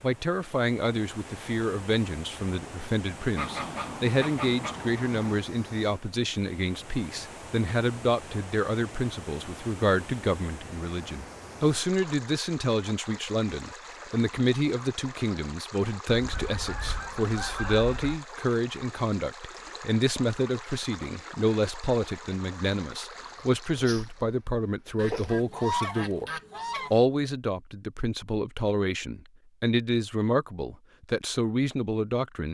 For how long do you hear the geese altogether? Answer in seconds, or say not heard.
6 s.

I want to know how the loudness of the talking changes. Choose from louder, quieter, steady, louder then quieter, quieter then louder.
steady.